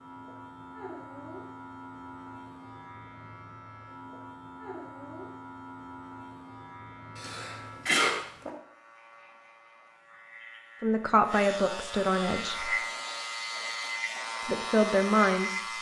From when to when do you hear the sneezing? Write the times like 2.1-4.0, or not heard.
7.2-8.5.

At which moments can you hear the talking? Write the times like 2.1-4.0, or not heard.
10.8-12.8, 14.4-15.6.